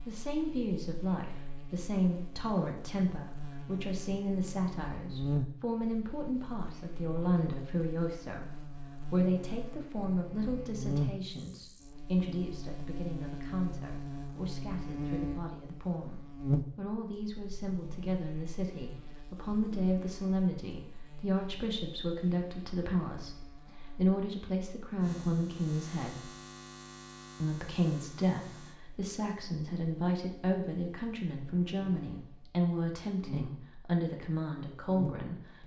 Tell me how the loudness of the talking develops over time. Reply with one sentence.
The loudness of the talking stays about the same.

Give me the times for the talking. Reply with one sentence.
The talking can be heard from 0.1 to 26.3 s and from 27.4 to 35.6 s.